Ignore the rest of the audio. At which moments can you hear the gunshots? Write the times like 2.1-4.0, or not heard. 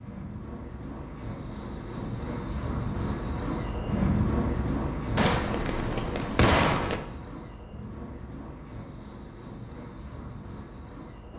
5.2-7.0.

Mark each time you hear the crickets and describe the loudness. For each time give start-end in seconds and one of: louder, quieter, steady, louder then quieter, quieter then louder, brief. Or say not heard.
0.0-11.3 louder then quieter.